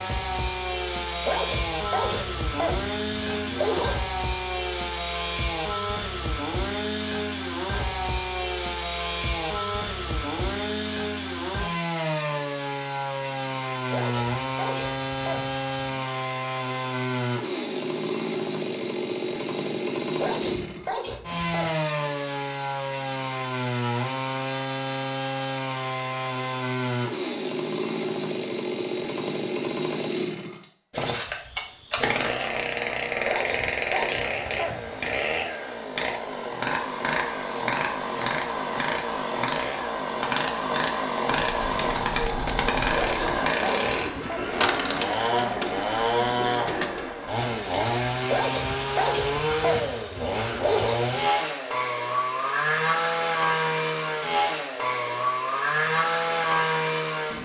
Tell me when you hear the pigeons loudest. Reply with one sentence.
The loudest moment of the pigeons is at 45 seconds.